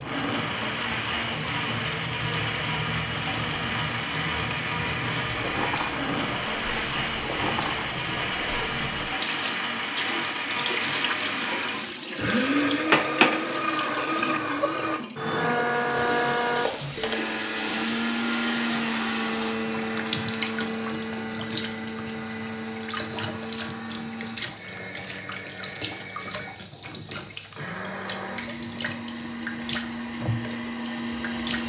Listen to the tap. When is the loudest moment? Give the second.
13 s.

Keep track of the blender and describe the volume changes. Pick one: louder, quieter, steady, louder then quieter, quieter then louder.
quieter.